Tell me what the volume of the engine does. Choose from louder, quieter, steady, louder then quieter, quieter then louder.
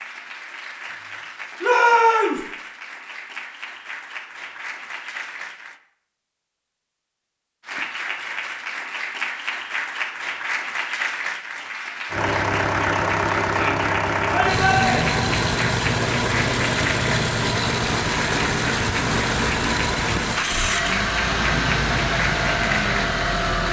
steady.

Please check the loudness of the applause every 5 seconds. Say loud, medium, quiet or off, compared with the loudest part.
medium, loud, loud, loud, loud.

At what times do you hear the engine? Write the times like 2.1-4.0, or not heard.
12.1-23.6.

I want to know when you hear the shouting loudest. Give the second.
2 s.